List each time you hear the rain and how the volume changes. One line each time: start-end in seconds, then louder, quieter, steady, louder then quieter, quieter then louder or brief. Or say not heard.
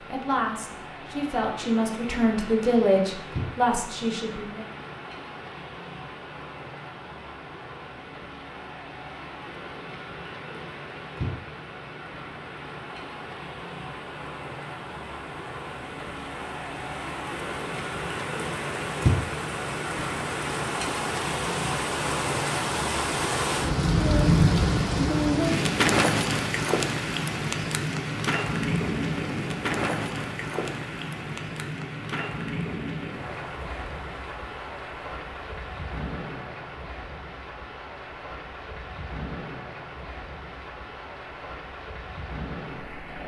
0.0-43.2 louder then quieter.